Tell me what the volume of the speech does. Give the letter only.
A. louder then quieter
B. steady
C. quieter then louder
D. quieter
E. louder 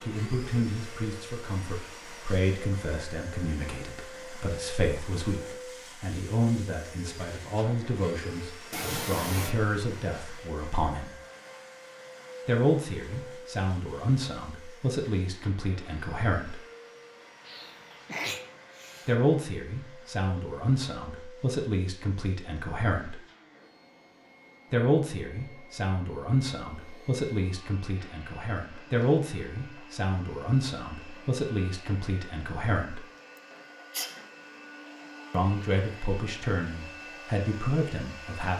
B.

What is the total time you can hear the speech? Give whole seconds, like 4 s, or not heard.
31 s.